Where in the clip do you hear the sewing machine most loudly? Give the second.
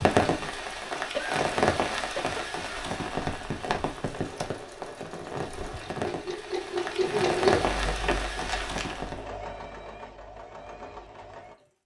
7 s.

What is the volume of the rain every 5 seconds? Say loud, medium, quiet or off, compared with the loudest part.
loud, loud, off.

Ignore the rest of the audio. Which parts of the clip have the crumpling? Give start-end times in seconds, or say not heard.
8.4-9.1.